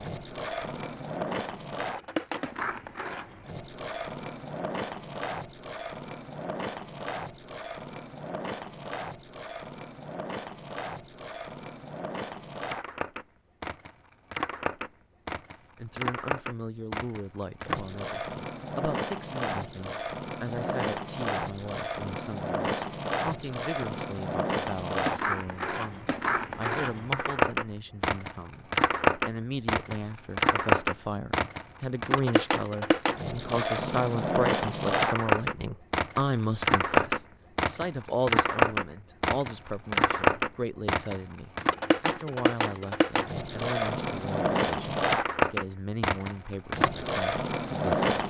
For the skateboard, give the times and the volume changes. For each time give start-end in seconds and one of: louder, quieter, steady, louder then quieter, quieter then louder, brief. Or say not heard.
0.0-48.2 louder.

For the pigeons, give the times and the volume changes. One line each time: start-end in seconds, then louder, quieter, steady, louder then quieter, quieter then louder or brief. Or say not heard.
not heard.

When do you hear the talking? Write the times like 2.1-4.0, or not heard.
15.8-48.0.